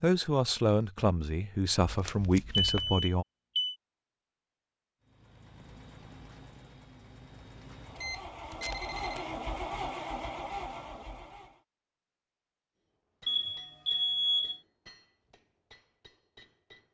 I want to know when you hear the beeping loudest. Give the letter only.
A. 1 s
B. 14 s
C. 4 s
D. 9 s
B.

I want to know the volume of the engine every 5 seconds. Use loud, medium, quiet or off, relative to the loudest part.
off, loud, loud, off.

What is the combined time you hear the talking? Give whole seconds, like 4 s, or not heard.
3 s.